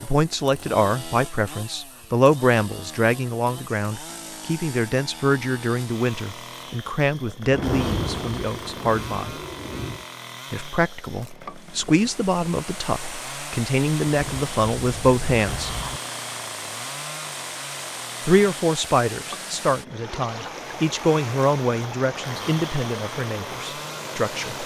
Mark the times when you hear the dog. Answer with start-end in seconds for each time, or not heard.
not heard.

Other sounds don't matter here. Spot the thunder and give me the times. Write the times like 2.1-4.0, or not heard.
7.5-10.1, 14.1-16.0.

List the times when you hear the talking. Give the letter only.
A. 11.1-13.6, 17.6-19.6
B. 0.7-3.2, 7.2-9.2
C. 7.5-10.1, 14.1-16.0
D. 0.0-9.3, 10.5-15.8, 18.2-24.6
D.